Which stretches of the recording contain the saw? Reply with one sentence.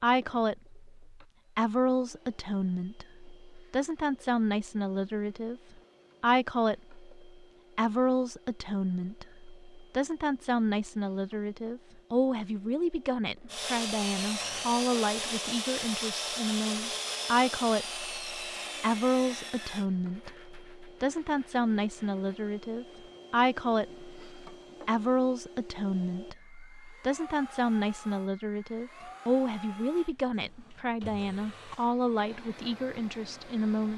You can hear the saw from 13.4 to 19.9 s.